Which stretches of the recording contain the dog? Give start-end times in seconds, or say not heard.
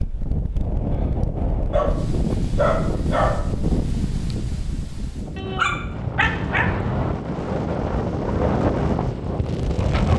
1.7-3.4, 5.3-6.7.